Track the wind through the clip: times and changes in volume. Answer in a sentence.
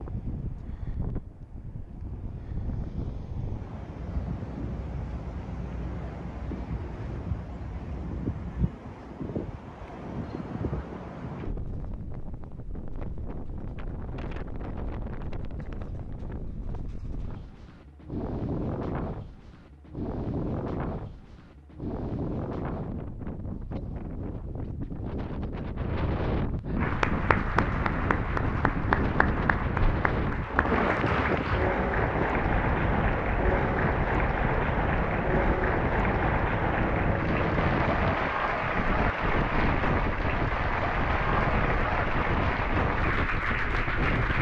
The wind can be heard from 0.0 to 44.3 s, getting louder.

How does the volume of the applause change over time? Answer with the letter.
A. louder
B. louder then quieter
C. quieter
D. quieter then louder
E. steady
E.